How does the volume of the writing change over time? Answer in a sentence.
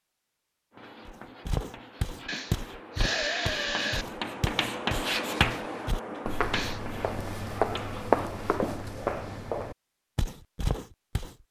The loudness of the writing goes up, then down.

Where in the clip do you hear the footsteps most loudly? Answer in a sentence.
The volume of the footsteps peaks at 8 seconds.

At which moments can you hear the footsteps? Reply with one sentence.
The footsteps can be heard from 1.1 to 11.3 s.